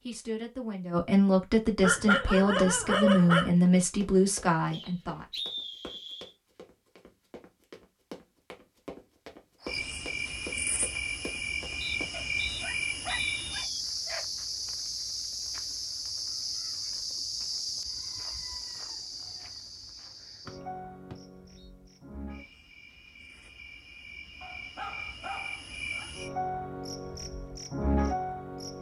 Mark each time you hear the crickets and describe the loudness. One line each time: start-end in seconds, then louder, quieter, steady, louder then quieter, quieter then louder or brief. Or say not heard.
9.6-28.7 quieter then louder.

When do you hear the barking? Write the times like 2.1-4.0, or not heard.
1.8-3.5, 12.1-14.2, 24.4-26.1.